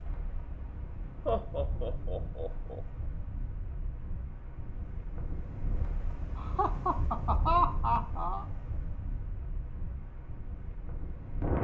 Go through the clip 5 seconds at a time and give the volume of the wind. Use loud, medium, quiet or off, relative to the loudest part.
medium, medium, loud.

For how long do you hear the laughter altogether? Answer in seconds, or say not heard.
4 s.